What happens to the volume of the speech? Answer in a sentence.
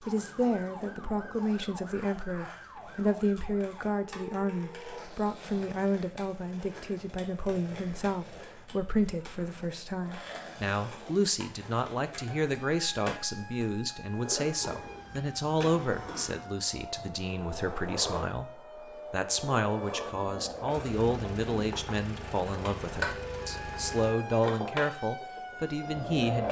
The volume of the speech stays about the same.